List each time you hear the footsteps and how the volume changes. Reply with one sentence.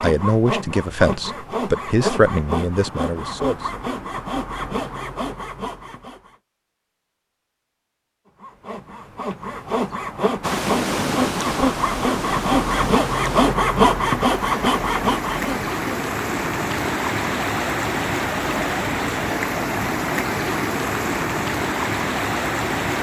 You can't hear the footsteps here.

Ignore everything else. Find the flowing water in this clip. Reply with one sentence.
You can hear the flowing water from 10.4 to 22.9 s.